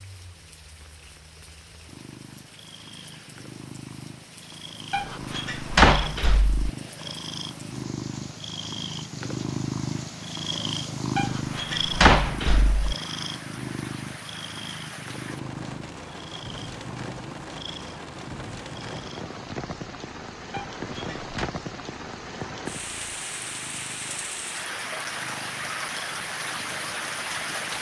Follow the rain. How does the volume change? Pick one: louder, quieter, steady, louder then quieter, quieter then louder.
louder.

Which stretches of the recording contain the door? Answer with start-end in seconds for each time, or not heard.
4.9-6.7, 11.2-12.8, 20.5-21.6.